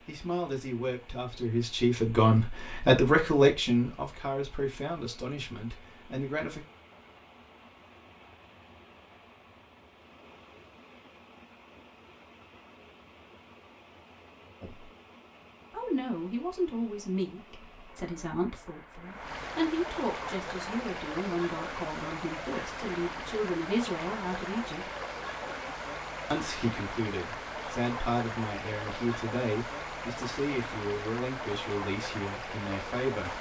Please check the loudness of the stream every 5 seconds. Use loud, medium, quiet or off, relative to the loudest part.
quiet, quiet, quiet, medium, loud, loud, loud.